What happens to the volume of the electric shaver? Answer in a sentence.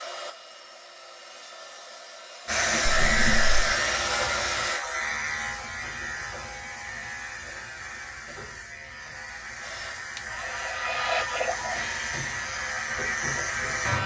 The loudness of the electric shaver goes down, then up.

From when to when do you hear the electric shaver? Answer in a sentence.
You can hear the electric shaver from 2.5 to 14.0 s.